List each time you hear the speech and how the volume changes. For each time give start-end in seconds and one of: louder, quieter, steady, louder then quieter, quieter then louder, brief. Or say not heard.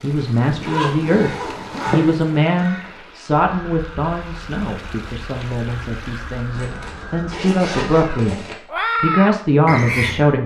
0.0-8.3 quieter then louder
9.0-10.4 brief.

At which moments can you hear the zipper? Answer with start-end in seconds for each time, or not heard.
0.5-2.0, 6.5-8.6.